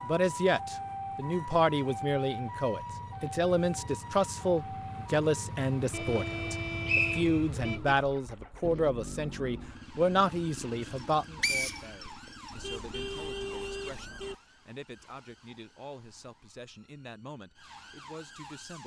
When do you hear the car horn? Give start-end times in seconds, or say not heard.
5.9-8.0, 12.5-14.3.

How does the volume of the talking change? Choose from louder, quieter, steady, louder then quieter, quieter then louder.
quieter.